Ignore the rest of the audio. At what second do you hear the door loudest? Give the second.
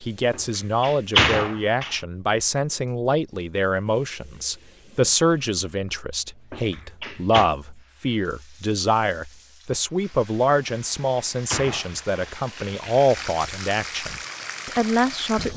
1 s.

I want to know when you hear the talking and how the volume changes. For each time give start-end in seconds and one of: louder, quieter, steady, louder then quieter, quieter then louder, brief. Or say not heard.
0.0-15.5 steady.